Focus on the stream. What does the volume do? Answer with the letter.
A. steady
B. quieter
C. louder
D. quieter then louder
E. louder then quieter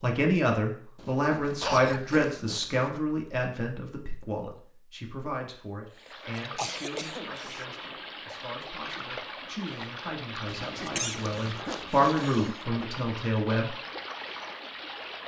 A.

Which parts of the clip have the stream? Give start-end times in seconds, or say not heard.
6.0-15.2.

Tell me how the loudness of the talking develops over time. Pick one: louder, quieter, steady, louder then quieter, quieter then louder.
quieter then louder.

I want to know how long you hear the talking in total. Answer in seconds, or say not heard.
14 s.